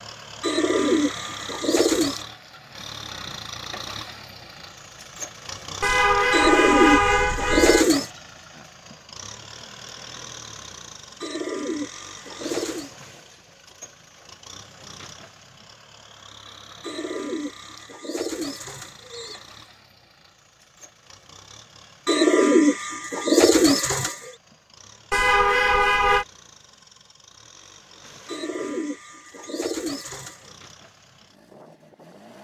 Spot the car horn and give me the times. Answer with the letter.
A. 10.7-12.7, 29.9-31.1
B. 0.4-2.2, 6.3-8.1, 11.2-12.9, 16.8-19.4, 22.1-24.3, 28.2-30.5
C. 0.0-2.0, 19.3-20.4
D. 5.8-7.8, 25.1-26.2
D.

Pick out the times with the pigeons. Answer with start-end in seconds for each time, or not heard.
0.4-2.2, 6.3-8.1, 11.2-12.9, 16.8-19.4, 22.1-24.3, 28.2-30.5.